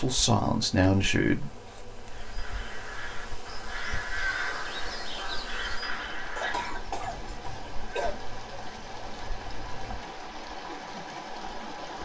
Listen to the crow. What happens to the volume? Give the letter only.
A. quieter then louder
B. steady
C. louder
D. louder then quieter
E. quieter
D.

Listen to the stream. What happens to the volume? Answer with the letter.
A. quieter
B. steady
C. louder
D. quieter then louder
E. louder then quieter
C.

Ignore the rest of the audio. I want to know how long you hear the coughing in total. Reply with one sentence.
The coughing can be heard for 2 seconds in total.